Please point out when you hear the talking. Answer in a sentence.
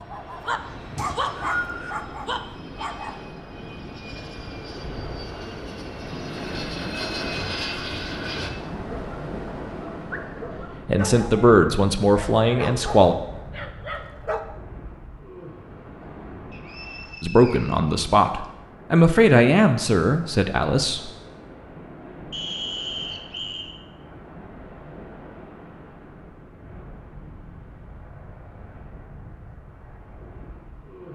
You can hear the talking from 10.8 to 13.2 s and from 17.2 to 21.1 s.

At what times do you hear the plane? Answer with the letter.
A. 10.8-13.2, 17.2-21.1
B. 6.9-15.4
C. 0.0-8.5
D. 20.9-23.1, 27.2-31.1
C.